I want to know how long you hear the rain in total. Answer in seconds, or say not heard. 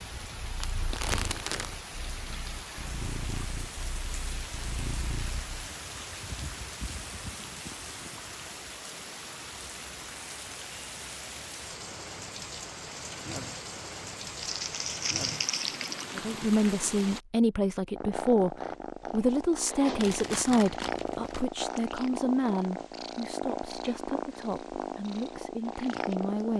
17 s.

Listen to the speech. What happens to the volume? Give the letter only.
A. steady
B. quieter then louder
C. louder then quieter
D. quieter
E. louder
D.